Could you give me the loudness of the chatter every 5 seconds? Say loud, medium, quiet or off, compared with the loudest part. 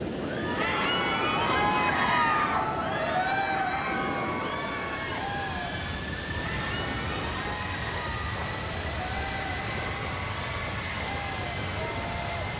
loud, medium, medium.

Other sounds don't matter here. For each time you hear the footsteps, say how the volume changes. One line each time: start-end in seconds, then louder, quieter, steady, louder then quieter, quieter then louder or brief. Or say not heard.
not heard.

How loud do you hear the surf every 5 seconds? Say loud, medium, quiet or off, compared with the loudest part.
loud, medium, off.